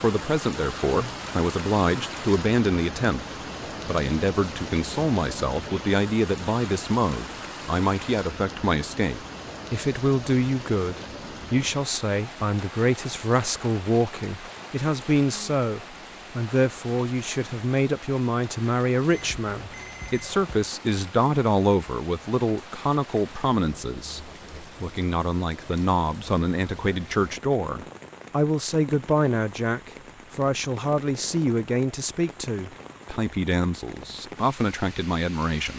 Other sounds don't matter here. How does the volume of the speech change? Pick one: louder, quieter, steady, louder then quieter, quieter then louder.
steady.